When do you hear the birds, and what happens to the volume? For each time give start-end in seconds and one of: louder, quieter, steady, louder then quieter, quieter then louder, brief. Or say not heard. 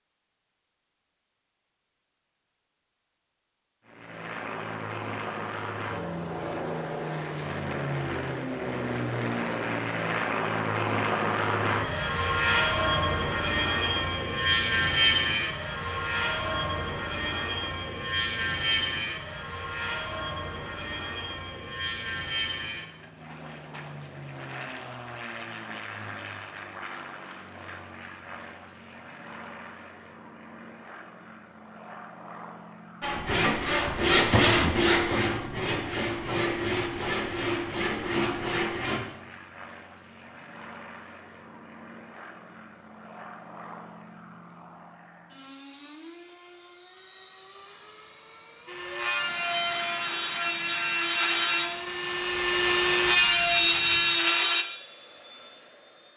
not heard.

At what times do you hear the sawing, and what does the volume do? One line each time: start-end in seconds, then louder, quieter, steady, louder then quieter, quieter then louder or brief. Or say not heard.
33.0-39.0 quieter
48.6-54.6 louder.